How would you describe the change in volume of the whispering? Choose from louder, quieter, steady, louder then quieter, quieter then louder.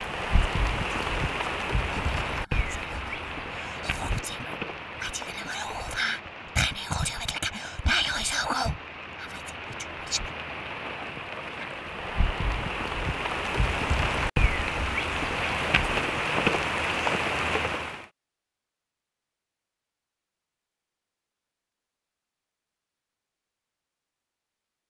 louder.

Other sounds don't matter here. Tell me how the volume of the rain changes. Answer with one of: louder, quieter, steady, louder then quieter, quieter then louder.
quieter then louder.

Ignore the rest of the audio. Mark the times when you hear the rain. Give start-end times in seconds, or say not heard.
0.0-18.1.